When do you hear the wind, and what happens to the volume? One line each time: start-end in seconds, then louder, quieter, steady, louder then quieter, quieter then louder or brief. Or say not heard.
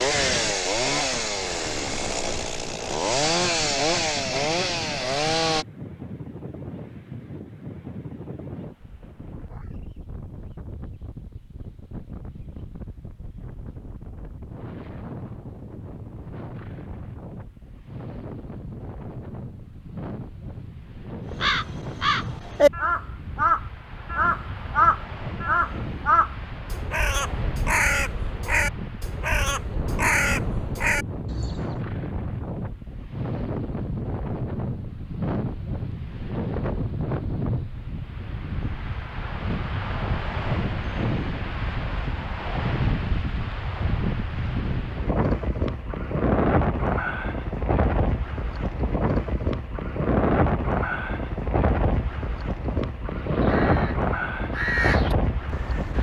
0.0-55.9 louder.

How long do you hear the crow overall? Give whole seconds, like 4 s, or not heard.
13 s.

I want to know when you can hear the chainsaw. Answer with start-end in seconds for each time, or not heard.
0.0-5.7.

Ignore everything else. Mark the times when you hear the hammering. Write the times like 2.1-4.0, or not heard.
not heard.